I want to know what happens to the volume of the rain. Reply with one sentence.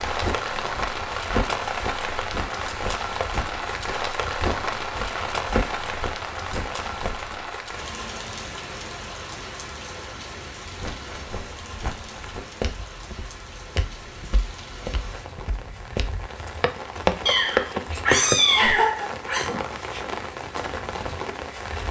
The loudness of the rain goes down, then up.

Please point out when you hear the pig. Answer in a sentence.
You can't hear the pig here.